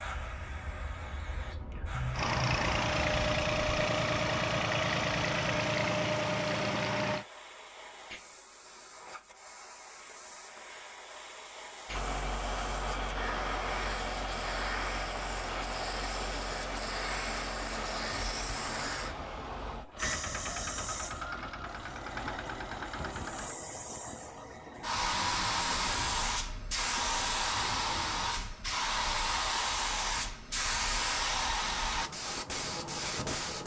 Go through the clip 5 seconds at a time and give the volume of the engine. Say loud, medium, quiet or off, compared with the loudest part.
loud, loud, medium, medium, medium, off, off.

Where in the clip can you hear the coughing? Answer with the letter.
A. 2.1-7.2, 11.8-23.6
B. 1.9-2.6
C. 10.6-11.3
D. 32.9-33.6
B.